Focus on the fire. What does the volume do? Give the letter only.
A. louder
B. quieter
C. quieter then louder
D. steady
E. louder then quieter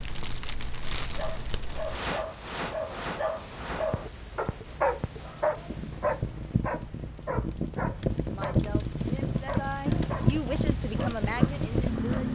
A.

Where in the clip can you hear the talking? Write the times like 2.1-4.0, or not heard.
8.2-12.3.